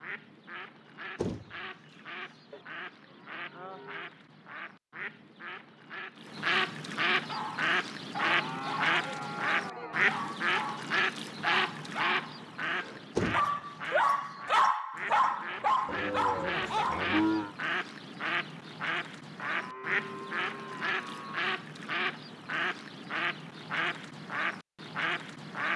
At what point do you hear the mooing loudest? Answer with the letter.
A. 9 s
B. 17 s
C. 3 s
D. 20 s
B.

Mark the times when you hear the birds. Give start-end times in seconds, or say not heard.
0.0-25.7.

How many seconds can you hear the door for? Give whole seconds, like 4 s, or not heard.
2 s.